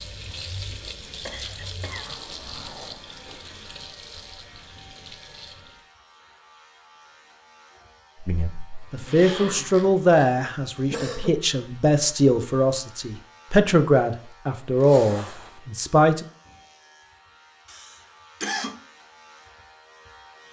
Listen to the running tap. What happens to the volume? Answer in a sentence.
The volume of the running tap goes down.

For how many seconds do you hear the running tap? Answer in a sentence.
You can hear the running tap for 6 seconds altogether.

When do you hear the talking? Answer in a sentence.
The talking can be heard from 8.2 to 16.2 s.